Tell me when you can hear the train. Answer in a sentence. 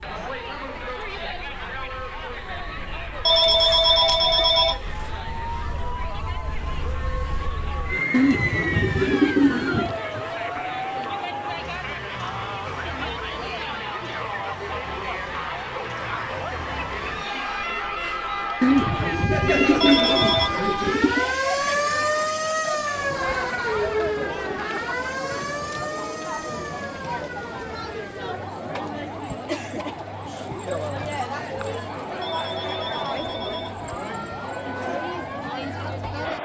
The train can't be heard in this clip.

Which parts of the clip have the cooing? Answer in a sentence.
You can hear the cooing from 8.1 to 9.9 s and from 18.6 to 21.2 s.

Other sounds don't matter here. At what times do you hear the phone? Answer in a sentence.
The phone can be heard from 3.2 to 4.8 s, from 19.8 to 20.5 s and from 32.2 to 33.8 s.